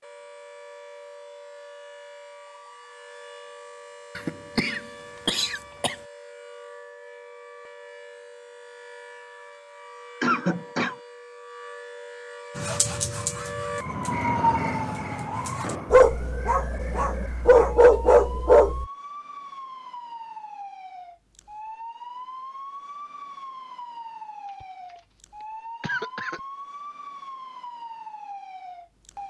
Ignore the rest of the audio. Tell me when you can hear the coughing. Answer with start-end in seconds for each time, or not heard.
4.2-6.0, 10.2-10.9, 24.4-25.0, 25.8-26.4.